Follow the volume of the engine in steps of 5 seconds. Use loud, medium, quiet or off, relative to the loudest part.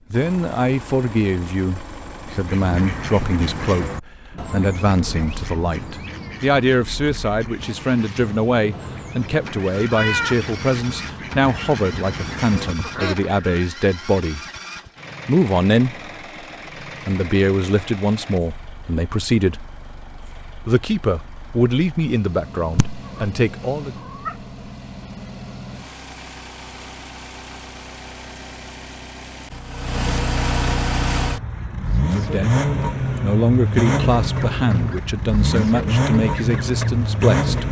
quiet, quiet, quiet, quiet, quiet, quiet, loud, loud.